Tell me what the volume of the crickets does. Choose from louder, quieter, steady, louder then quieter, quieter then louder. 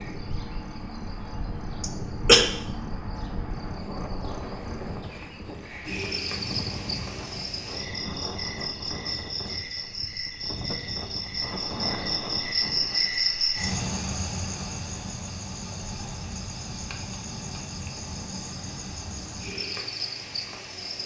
louder then quieter.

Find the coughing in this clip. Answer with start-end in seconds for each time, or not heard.
1.8-2.5.